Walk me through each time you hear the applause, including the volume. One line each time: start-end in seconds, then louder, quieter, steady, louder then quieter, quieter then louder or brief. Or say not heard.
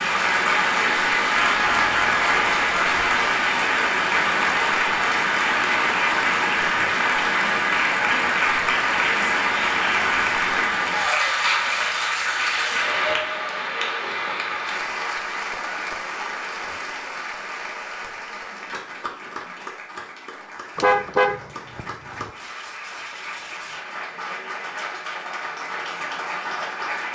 0.0-27.1 quieter.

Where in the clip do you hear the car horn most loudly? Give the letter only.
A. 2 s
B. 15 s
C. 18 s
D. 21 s
D.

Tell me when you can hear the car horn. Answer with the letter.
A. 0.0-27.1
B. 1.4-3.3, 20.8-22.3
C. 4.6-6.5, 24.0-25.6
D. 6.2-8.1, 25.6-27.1
B.